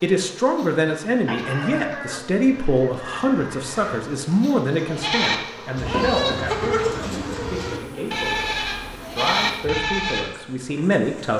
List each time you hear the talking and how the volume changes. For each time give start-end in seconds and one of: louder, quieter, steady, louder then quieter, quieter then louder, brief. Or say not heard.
0.0-11.3 quieter then louder.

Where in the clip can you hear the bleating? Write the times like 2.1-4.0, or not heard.
4.8-10.3.